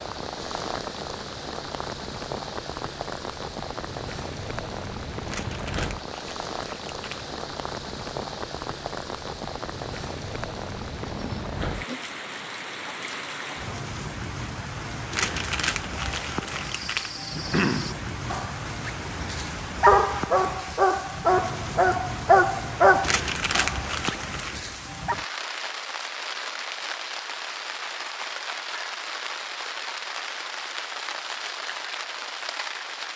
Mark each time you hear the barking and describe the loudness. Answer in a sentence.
The barking can be heard from 16.2 to 25.1 s, getting louder then quieter.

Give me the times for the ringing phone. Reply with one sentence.
The ringing phone can't be heard in this clip.